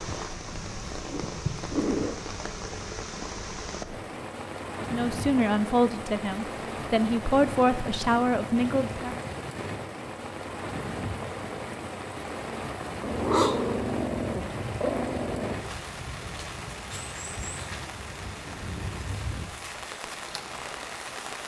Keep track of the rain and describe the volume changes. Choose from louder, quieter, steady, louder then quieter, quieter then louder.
steady.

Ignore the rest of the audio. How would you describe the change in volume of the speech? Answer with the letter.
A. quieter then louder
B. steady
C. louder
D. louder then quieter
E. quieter
A.